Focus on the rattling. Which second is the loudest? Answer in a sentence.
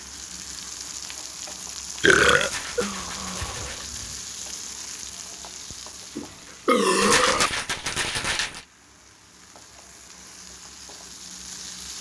The volume of the rattling peaks at 7 seconds.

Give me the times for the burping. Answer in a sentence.
You can hear the burping from 2.0 to 4.0 s and from 6.2 to 7.5 s.